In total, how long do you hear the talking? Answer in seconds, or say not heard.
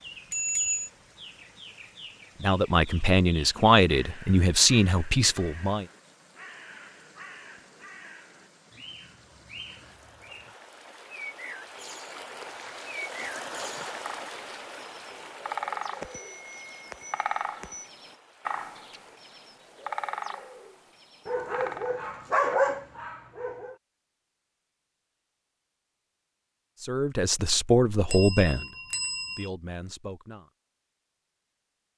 7 s.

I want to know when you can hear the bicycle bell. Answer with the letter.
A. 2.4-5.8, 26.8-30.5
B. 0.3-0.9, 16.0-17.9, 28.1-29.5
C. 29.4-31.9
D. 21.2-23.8
B.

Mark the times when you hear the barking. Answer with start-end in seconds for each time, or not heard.
21.2-23.8.